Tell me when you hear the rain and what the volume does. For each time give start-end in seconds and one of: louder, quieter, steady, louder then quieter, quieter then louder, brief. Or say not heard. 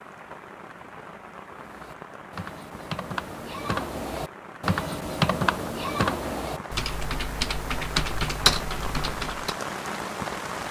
0.0-10.6 louder.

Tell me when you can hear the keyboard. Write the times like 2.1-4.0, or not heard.
1.4-9.6.